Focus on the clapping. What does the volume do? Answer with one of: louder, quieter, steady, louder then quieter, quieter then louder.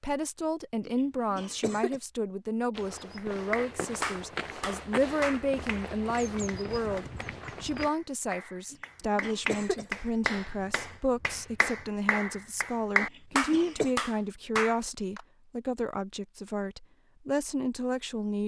quieter then louder.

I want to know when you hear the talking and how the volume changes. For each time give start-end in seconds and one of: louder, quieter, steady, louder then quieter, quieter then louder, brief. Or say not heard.
0.0-18.4 steady.